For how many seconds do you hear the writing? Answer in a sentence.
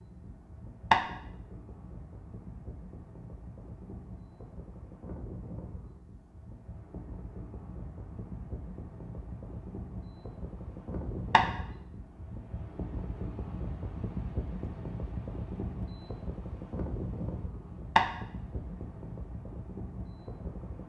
The writing can't be heard in this clip.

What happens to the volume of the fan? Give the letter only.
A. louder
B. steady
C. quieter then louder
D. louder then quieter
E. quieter
A.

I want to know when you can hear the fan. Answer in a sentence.
The fan can be heard from 0.0 to 20.8 s.